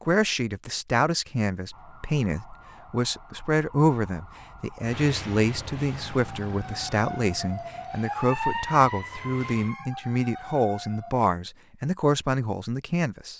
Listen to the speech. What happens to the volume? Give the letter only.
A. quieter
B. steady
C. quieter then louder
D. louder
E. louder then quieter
B.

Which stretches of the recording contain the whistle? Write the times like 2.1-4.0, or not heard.
not heard.